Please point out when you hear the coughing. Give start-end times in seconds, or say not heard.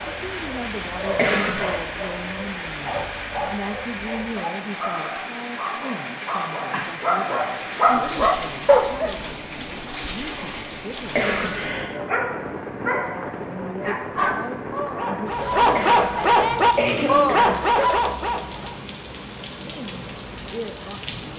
1.1-1.8, 11.1-11.9, 15.8-17.6.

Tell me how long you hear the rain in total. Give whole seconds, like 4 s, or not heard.
21 s.